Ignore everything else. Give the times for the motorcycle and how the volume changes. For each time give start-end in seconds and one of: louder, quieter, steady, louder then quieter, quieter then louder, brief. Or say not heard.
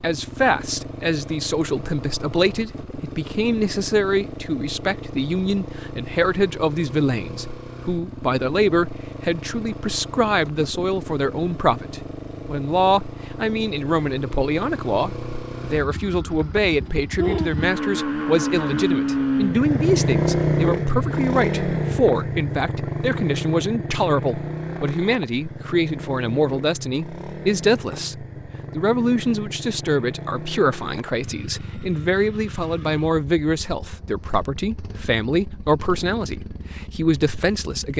0.0-37.9 louder then quieter.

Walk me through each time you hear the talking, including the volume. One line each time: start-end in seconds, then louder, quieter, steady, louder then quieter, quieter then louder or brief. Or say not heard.
0.0-37.9 steady.